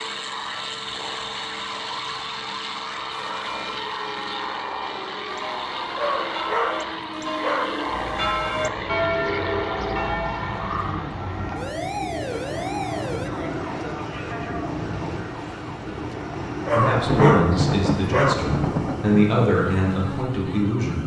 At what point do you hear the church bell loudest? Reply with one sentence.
The loudest moment of the church bell is at 9 seconds.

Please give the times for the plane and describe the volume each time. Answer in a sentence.
The plane can be heard from 0.0 to 21.0 s, at a steady volume.